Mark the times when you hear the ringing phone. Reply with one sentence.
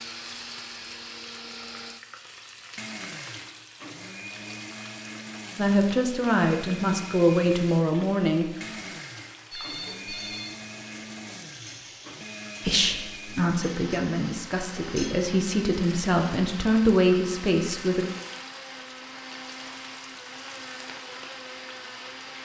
The ringing phone can be heard from 9.5 to 10.6 s.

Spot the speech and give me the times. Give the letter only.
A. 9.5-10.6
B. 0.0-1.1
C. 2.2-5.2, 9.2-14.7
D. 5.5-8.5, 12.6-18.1
D.